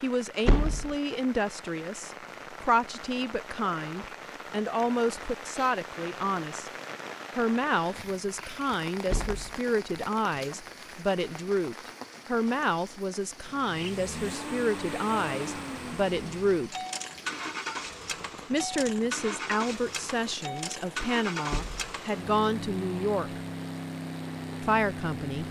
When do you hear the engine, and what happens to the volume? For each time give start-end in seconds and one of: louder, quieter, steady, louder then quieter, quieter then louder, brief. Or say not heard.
13.4-25.4 steady.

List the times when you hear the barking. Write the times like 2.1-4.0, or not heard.
not heard.